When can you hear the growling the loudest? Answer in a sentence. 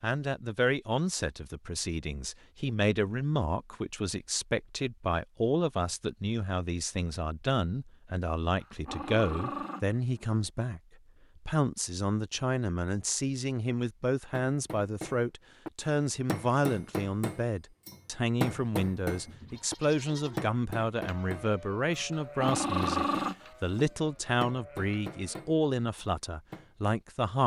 The volume of the growling peaks at 23 seconds.